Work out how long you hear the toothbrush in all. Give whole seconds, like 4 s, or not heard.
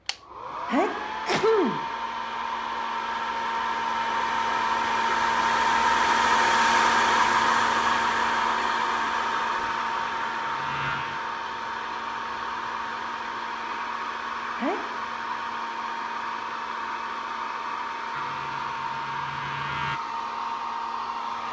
not heard.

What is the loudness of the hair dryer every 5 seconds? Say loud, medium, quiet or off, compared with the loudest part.
medium, loud, medium, medium, medium.